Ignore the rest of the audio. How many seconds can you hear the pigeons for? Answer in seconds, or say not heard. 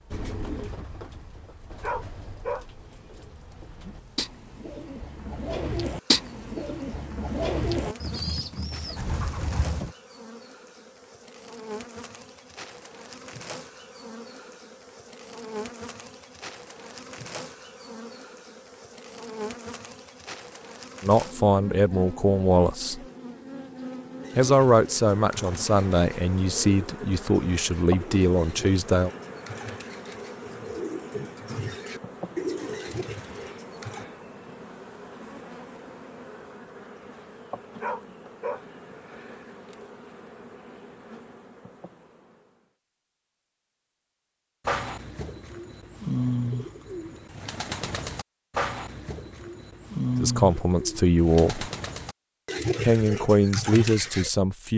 29 s.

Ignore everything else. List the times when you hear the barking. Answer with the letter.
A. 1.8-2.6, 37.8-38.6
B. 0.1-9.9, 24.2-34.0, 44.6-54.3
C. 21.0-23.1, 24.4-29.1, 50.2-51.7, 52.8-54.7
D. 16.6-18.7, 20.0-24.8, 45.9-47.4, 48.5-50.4
A.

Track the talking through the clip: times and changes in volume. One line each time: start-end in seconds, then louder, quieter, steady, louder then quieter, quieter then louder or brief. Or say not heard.
21.0-23.1 brief
24.4-29.1 steady
50.2-51.7 brief
52.8-54.7 brief.